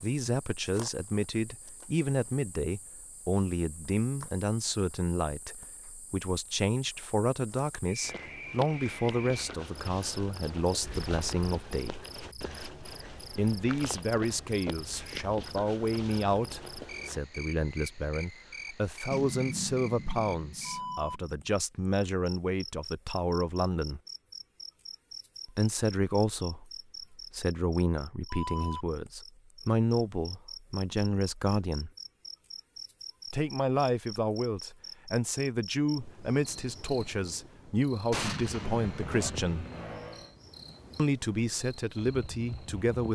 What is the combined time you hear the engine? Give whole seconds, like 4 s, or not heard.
2 s.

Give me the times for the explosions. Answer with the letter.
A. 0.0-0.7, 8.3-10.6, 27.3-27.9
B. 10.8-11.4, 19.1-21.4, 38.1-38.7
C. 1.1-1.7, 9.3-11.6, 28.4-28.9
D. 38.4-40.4
B.